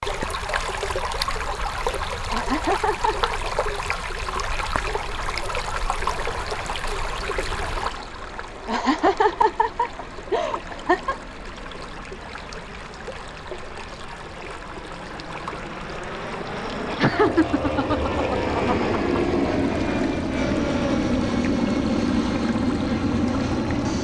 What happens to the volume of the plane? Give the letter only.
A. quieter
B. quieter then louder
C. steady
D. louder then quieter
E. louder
E.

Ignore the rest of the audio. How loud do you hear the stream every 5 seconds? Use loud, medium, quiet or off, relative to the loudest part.
loud, loud, medium, medium, medium.